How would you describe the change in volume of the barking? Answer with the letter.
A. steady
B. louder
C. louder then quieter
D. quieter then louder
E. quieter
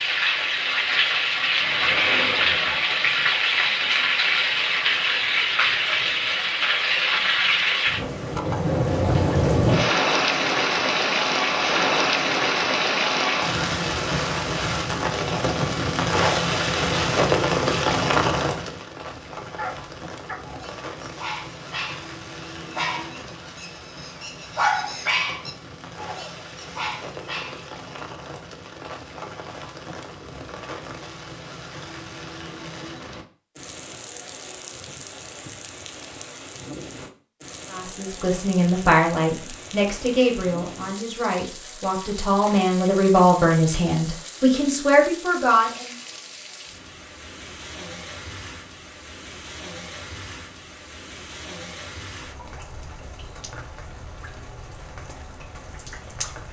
C.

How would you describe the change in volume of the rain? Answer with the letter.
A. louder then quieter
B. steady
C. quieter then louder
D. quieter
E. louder
D.